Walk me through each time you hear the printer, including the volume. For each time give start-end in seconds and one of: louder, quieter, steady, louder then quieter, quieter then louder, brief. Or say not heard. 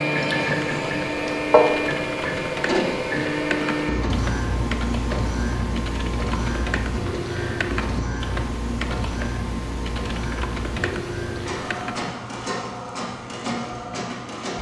0.0-14.5 quieter.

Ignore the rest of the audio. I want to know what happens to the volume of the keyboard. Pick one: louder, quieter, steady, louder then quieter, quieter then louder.
steady.